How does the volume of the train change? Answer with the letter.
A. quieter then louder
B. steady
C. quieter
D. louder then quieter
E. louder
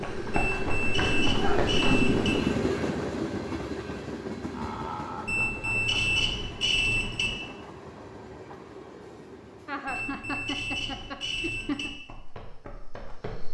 C.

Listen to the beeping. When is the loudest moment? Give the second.
6 s.